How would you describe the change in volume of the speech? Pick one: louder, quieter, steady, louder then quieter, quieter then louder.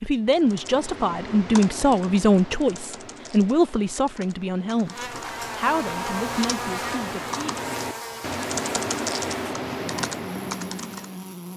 quieter.